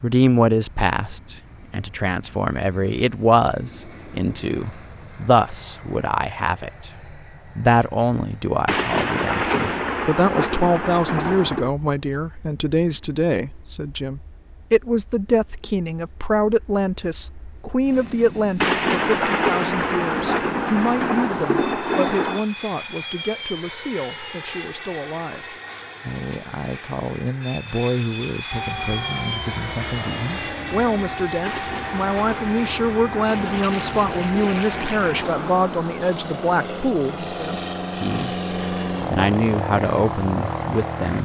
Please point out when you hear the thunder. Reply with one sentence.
The thunder can be heard from 8.7 to 11.7 s, from 18.6 to 22.4 s and from 31.4 to 35.0 s.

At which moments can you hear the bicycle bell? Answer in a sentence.
The bicycle bell can't be heard in this clip.